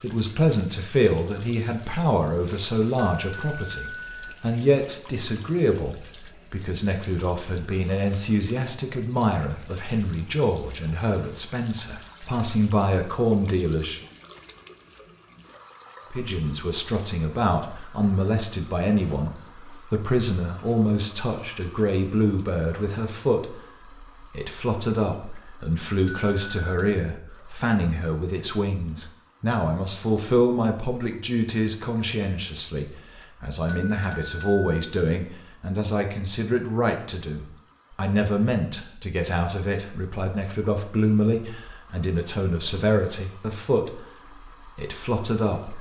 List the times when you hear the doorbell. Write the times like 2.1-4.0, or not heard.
3.0-4.3, 26.1-26.9, 33.6-34.9.